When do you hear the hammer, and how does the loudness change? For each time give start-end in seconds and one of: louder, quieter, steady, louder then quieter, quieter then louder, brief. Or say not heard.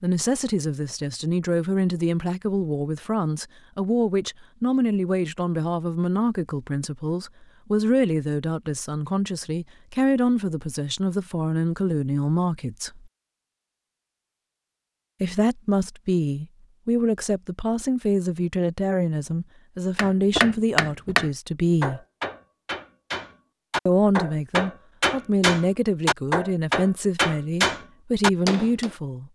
19.9-28.9 quieter then louder.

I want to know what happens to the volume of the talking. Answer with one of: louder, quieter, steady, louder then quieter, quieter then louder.
steady.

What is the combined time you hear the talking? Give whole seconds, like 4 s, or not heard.
25 s.